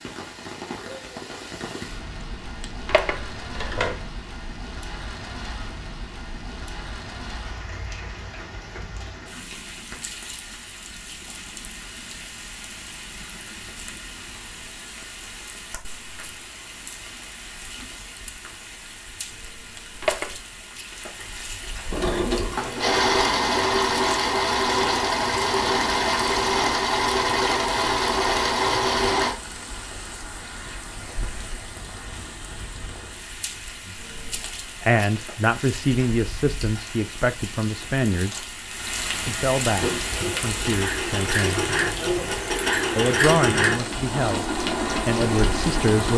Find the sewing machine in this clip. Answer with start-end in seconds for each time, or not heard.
21.9-29.4, 39.8-46.1.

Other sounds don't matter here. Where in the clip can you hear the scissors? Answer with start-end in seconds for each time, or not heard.
2.2-4.1, 19.3-20.4, 34.0-34.5.